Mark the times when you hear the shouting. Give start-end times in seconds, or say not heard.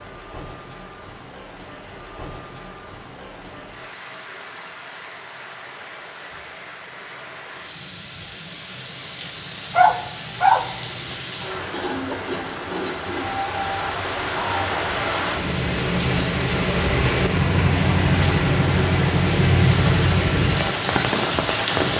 not heard.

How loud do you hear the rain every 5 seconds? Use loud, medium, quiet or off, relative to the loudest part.
quiet, quiet, medium, loud, loud.